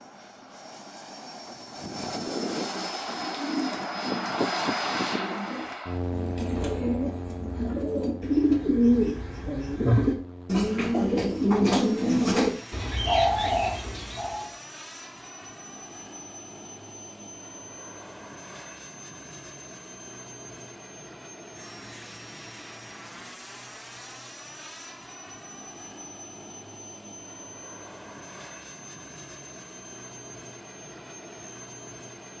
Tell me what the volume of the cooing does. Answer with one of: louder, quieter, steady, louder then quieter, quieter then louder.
louder.